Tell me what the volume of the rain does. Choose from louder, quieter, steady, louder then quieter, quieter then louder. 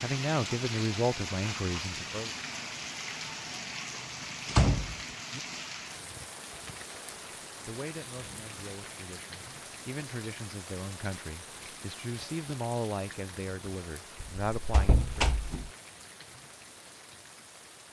quieter.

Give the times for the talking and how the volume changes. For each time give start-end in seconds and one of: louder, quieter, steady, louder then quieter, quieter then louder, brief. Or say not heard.
0.0-2.3 brief
7.7-15.3 louder.